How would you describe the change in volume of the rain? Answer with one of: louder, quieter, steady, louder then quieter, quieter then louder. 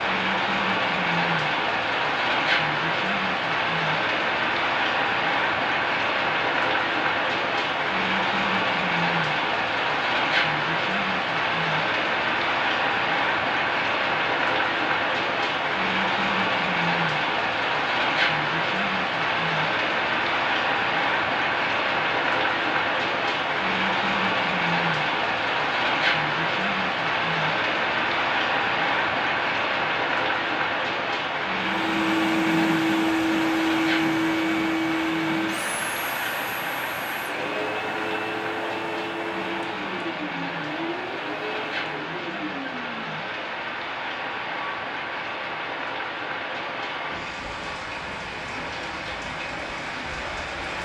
quieter.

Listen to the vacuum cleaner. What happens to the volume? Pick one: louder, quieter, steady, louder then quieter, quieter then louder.
quieter.